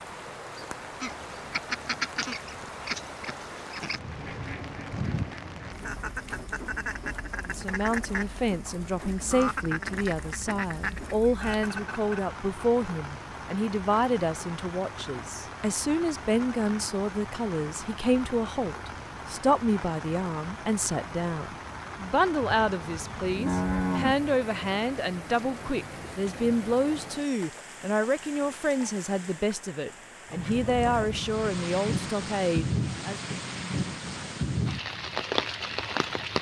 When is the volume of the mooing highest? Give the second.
24 s.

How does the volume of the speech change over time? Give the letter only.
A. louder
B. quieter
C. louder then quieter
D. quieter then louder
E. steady
E.